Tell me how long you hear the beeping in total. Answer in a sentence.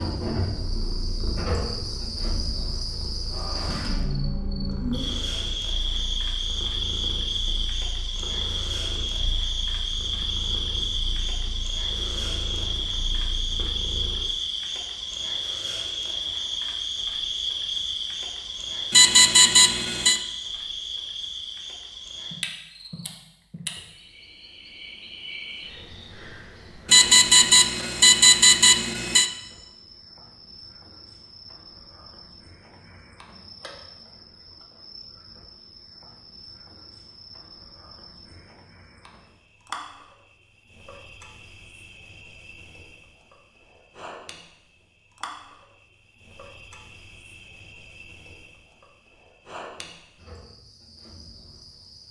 You can hear the beeping for 4 seconds altogether.